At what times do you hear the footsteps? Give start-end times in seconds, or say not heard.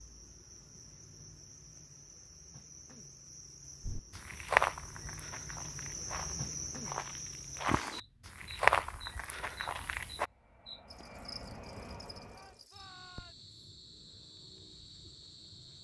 3.9-10.3.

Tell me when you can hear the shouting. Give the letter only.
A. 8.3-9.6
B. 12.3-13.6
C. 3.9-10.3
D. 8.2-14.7
B.